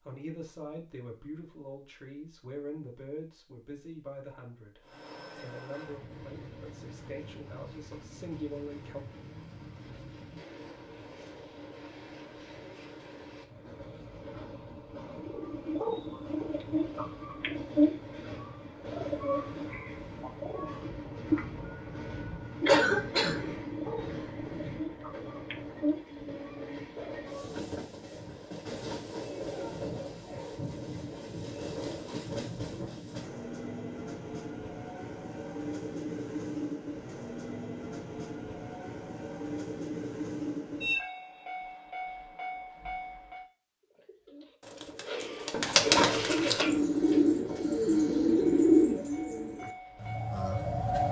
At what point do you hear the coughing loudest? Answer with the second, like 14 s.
23 s.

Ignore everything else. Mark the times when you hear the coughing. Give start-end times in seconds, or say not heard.
22.6-23.4, 45.0-46.8.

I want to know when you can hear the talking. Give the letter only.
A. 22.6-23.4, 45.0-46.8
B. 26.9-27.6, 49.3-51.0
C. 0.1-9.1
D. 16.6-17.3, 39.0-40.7
C.